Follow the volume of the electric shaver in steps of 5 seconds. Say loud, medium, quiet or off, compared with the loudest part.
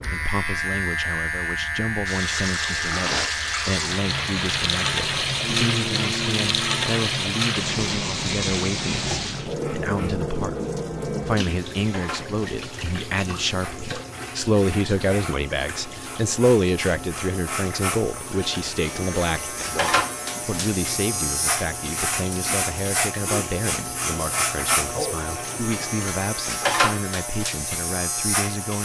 loud, medium, quiet, loud, loud, loud.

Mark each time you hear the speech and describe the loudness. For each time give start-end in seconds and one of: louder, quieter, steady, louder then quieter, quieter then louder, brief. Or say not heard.
0.1-28.7 louder then quieter.